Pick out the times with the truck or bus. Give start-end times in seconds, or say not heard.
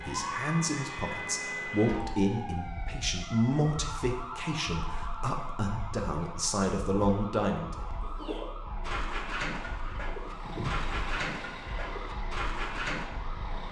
10.2-13.6.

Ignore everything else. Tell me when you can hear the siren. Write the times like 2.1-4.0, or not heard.
0.0-13.6.